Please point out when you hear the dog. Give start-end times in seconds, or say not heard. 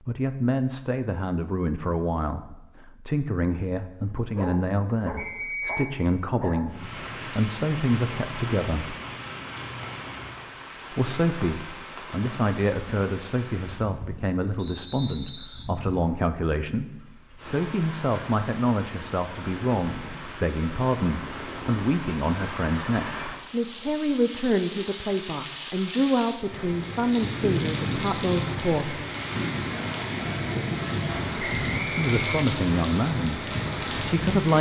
4.0-6.7.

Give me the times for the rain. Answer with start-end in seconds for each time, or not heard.
6.7-34.5.